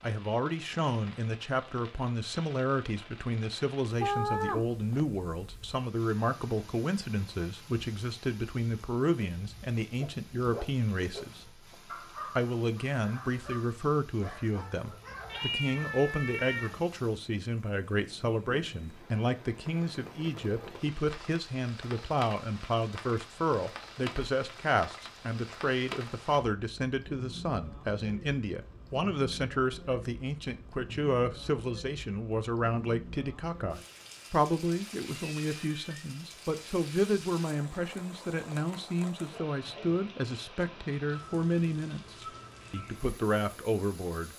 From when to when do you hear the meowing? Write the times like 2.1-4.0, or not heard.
4.0-5.0, 15.3-16.8, 35.1-36.0.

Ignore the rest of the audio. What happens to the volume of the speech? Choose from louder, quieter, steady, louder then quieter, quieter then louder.
steady.